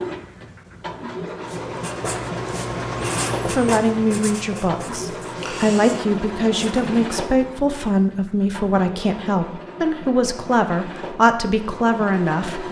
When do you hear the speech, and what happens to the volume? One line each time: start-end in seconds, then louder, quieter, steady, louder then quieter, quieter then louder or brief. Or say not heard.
3.5-12.6 steady.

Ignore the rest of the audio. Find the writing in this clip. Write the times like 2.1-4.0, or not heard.
1.4-7.0.